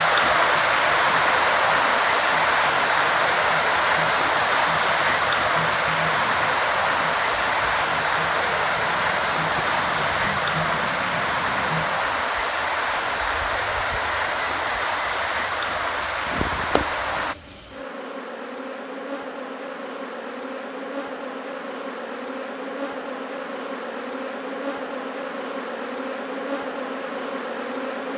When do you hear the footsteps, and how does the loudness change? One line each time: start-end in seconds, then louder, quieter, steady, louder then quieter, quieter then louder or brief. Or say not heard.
not heard.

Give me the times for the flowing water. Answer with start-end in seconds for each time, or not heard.
0.0-17.4.